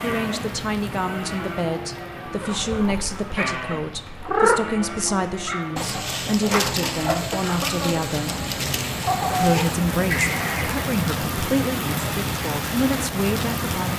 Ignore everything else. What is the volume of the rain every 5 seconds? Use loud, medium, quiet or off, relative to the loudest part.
medium, medium, loud.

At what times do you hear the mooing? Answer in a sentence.
The mooing can be heard from 0.0 to 7.2 s.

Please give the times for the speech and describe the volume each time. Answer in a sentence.
The speech can be heard from 0.0 to 8.4 s, at a steady volume; and from 9.4 to 13.9 s, getting quieter then louder.